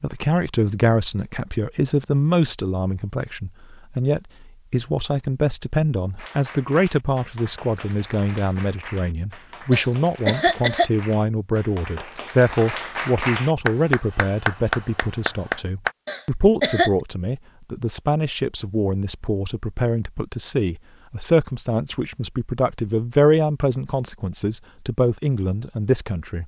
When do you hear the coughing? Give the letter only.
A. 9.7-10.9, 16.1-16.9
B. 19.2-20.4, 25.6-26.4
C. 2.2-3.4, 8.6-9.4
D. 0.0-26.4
A.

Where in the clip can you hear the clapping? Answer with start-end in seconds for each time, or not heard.
6.2-15.9.